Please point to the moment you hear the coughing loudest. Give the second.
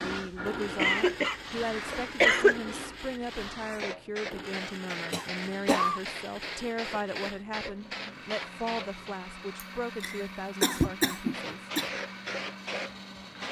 2 s.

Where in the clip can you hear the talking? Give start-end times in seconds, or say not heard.
0.0-11.6.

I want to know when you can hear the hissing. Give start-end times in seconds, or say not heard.
0.0-9.2, 11.3-13.4.